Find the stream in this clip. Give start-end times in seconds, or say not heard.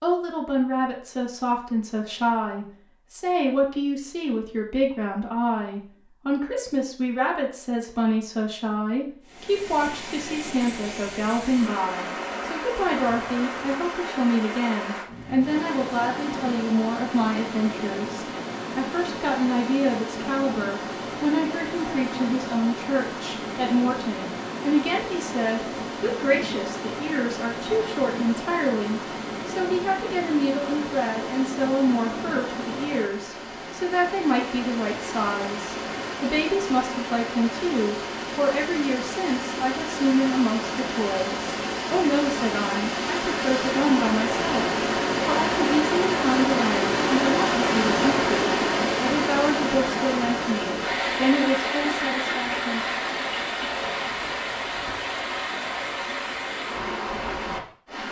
9.2-58.0.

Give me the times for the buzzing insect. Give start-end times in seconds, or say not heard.
not heard.